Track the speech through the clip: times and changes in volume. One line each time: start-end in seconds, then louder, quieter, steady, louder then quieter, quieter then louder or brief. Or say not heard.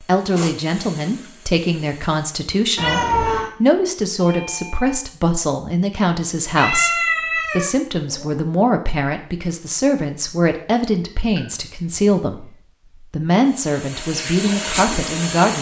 0.0-15.5 steady.